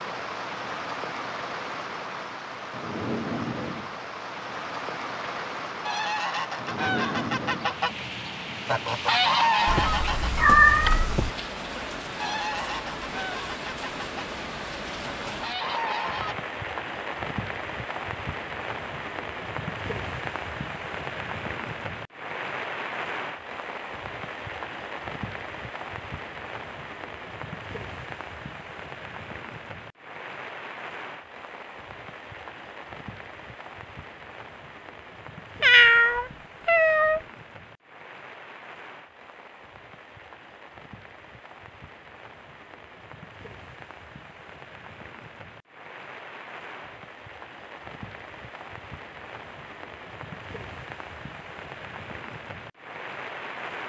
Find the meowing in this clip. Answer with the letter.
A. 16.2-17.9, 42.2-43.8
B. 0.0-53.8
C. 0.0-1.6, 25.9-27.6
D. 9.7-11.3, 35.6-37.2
D.